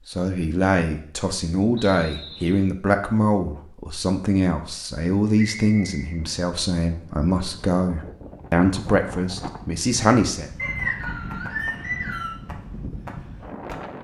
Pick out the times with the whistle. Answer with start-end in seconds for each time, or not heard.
1.8-2.6, 5.3-6.2, 10.6-12.3.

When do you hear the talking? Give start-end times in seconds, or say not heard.
0.1-10.5.